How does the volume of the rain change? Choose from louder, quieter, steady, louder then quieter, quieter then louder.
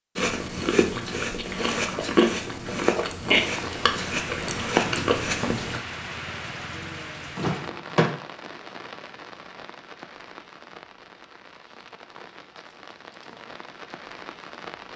quieter.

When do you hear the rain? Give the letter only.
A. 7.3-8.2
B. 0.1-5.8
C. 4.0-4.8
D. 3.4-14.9
D.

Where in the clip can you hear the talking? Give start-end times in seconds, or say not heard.
not heard.